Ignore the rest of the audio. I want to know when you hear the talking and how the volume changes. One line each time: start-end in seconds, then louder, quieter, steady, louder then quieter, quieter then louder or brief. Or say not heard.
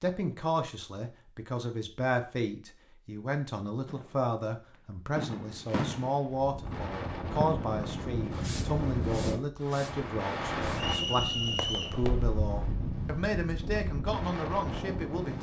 0.0-15.3 steady.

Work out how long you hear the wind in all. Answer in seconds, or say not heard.
9 s.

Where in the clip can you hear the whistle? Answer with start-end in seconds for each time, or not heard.
10.8-12.0.